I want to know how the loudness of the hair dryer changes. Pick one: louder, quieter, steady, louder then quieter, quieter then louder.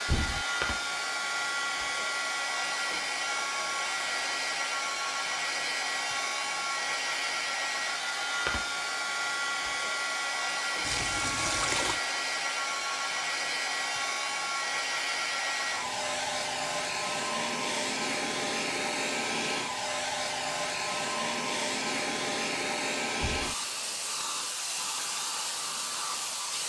steady.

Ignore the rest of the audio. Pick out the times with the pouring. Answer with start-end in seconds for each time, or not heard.
10.8-12.0.